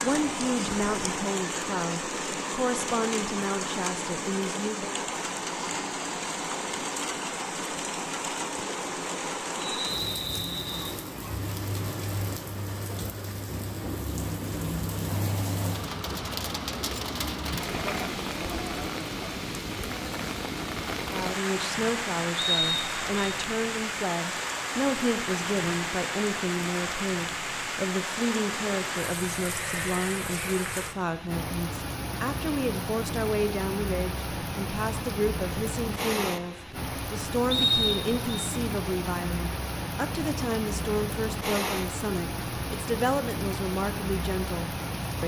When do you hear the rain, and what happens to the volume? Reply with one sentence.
The rain can be heard from 0.0 to 45.2 s, at a steady volume.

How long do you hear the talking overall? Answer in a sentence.
You can hear the talking for 29 seconds altogether.